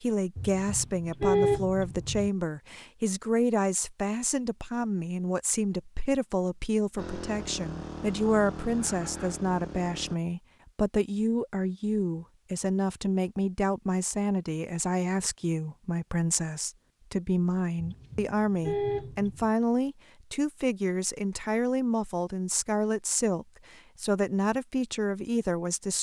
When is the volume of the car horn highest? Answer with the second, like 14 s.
1 s.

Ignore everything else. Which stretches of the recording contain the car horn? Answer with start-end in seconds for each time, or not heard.
0.3-2.3, 17.8-19.5.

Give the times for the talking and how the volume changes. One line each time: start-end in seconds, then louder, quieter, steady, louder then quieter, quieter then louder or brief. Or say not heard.
0.0-25.9 steady.